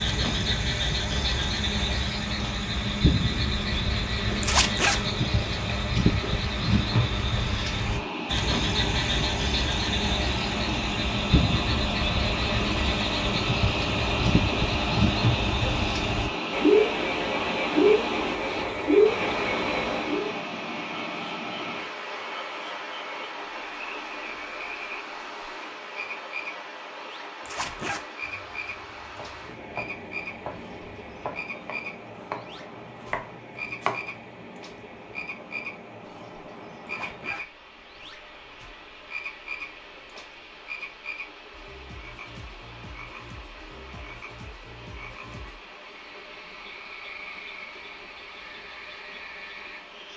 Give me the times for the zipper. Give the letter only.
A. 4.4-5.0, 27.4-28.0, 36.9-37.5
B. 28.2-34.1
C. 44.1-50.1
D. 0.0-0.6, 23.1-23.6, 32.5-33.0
A.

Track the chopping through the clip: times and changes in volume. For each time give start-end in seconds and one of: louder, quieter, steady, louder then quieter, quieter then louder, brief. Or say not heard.
28.2-34.1 louder.